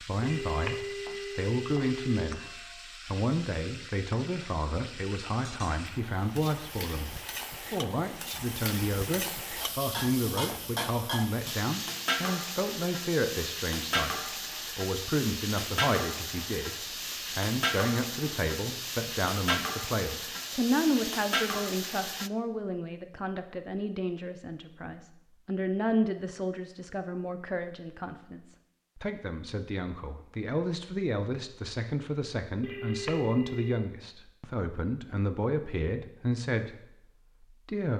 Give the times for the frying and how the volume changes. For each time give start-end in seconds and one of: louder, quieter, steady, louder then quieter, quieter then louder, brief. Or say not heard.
0.0-22.3 louder.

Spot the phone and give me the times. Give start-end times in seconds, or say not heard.
0.2-2.2, 32.6-33.9.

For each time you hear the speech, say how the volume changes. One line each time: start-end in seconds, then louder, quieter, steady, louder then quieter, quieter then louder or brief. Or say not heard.
0.0-37.9 steady.